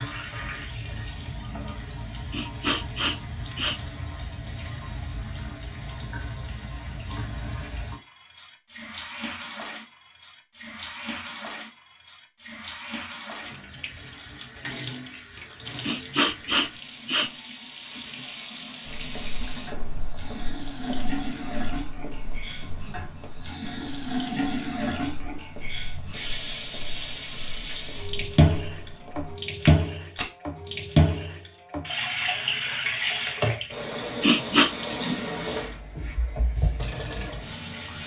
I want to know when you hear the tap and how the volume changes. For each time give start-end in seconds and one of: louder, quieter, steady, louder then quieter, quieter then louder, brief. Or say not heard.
0.0-38.0 louder.